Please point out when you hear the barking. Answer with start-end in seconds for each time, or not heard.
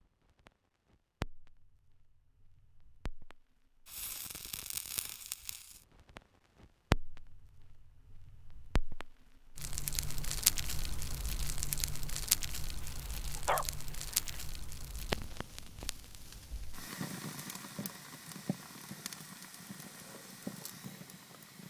12.8-14.4.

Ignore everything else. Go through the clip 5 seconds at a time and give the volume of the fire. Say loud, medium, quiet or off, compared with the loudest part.
medium, loud, loud, medium, medium.